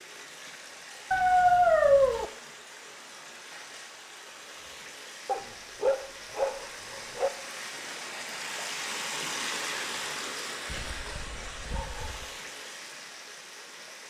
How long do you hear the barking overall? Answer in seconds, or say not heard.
5 s.